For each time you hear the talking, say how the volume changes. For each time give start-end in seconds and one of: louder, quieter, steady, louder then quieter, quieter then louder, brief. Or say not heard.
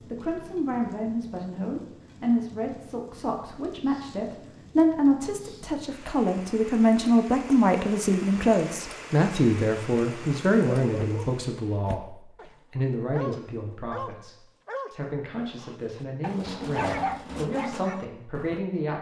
0.0-18.9 louder then quieter.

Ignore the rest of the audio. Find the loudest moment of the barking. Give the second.
17 s.